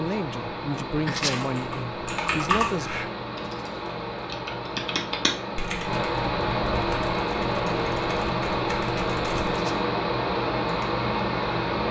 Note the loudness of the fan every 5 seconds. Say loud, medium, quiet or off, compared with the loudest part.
medium, loud, loud.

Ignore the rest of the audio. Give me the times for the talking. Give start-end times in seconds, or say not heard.
0.0-2.9.